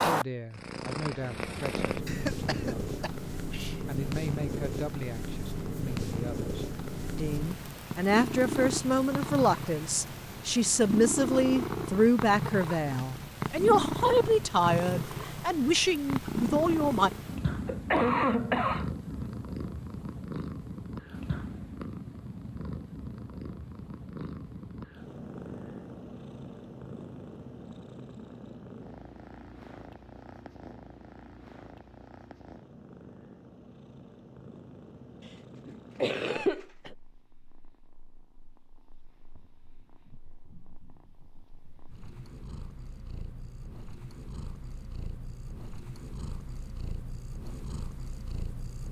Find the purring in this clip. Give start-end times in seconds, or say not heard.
0.0-48.8.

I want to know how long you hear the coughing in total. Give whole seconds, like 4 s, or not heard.
4 s.